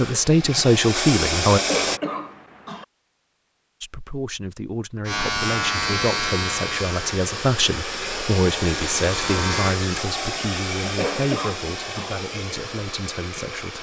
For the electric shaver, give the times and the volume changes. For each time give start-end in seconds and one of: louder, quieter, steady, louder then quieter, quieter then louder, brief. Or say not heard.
5.0-9.8 quieter then louder.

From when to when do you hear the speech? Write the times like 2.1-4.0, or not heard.
0.0-1.6, 3.8-13.7.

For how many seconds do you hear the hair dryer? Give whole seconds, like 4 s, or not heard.
10 s.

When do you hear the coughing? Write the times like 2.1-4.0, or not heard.
1.5-2.9, 10.8-12.2.